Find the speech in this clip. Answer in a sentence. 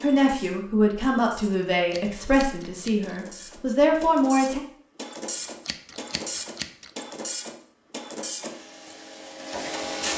The speech can be heard from 0.0 to 4.6 s.